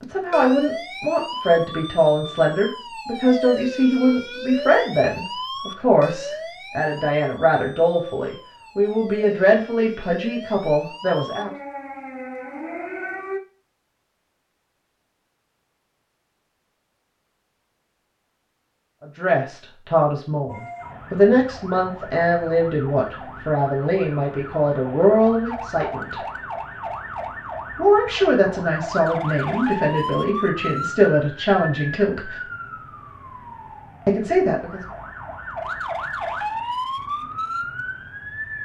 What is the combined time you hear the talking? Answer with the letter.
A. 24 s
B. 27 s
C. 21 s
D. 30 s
A.